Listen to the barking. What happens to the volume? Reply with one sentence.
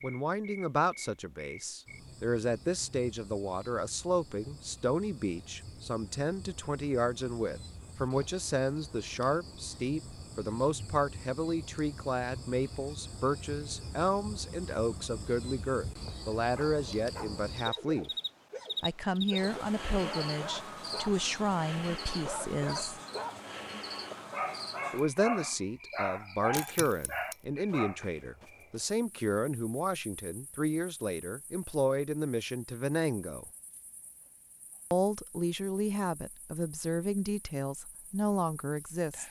The volume of the barking goes up.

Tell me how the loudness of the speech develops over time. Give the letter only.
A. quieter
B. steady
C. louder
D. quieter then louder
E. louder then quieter
B.